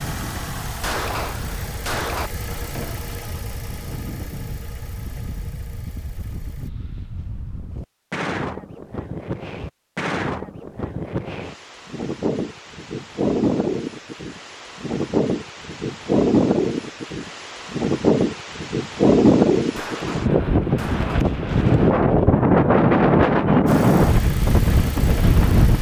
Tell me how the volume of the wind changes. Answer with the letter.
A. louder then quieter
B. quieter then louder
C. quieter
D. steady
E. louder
E.